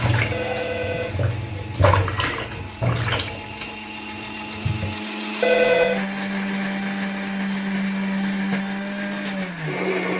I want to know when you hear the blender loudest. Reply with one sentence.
The loudest moment of the blender is at 8 seconds.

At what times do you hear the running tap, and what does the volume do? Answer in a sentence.
You can hear the running tap from 0.0 to 5.0 s, getting louder then quieter.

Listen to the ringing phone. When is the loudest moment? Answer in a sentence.
The loudest moment of the ringing phone is at 6 seconds.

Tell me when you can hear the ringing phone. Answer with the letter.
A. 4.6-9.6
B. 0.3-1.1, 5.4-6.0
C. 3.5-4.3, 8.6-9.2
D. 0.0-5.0
B.